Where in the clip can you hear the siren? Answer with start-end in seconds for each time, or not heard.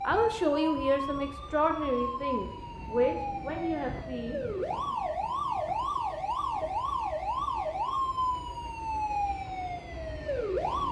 0.0-10.8.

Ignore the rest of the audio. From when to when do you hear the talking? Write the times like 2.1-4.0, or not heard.
0.1-4.4.